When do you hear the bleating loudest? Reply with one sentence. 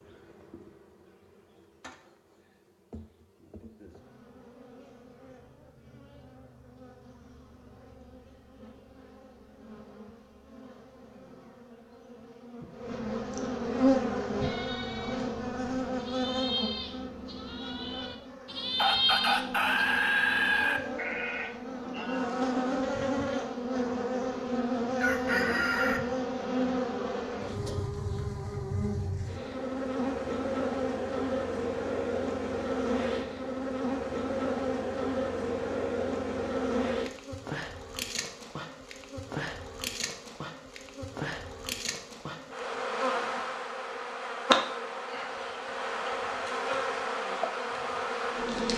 The volume of the bleating peaks at 19 seconds.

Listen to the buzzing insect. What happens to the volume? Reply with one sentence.
The volume of the buzzing insect goes up.